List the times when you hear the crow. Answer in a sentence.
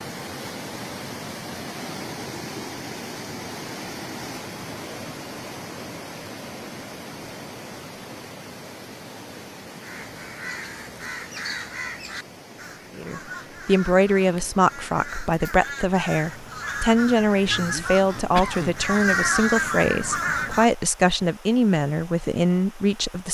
The crow can be heard from 9.8 to 20.6 s.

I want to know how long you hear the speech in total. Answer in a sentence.
You can hear the speech for 10 seconds altogether.